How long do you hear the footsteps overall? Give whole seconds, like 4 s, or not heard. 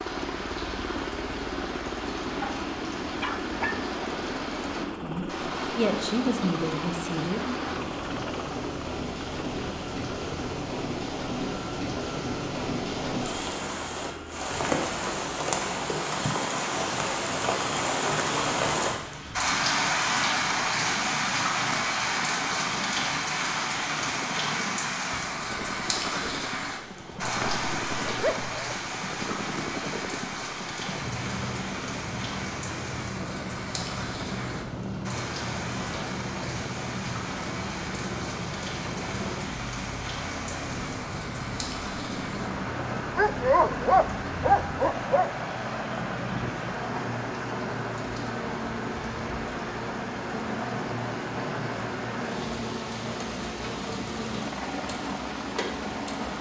not heard.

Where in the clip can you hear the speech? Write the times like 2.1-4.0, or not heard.
4.9-7.6.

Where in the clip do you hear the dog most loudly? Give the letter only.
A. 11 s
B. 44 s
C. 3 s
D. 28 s
B.